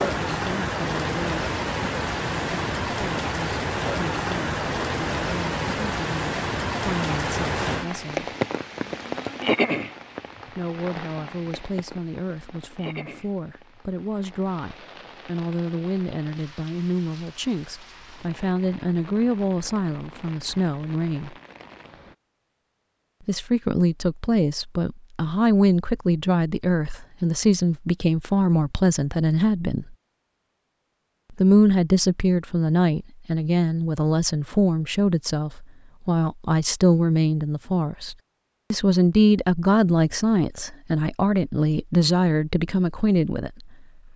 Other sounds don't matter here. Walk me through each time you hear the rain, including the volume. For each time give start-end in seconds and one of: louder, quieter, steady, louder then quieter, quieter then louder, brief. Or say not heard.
0.0-22.1 quieter.